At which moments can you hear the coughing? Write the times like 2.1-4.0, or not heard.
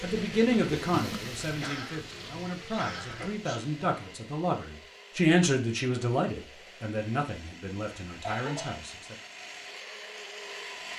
1.6-3.6, 8.2-8.8.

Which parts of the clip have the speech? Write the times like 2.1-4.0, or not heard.
0.0-9.2.